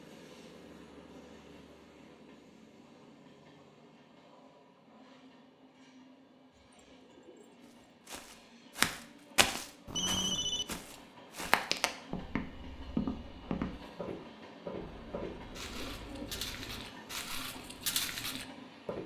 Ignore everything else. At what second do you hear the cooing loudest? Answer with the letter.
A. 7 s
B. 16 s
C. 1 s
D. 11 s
B.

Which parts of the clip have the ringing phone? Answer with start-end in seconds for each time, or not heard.
9.8-10.7.